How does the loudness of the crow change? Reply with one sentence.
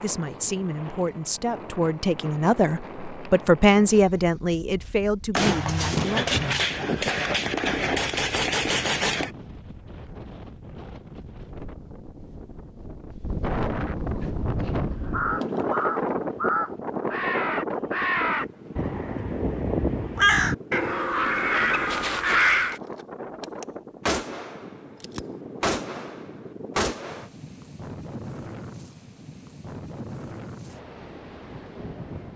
The loudness of the crow goes up.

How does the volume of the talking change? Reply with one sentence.
The loudness of the talking goes up, then down.